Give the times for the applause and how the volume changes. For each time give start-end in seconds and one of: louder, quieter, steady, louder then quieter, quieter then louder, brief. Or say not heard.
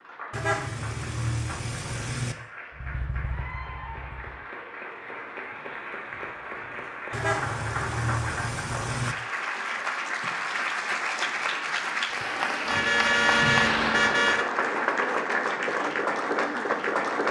0.0-17.2 louder.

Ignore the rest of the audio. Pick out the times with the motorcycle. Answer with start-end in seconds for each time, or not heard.
2.7-4.5.